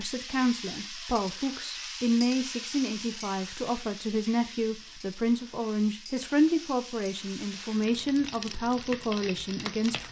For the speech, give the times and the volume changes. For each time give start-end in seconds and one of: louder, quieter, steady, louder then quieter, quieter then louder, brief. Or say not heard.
0.0-10.0 steady.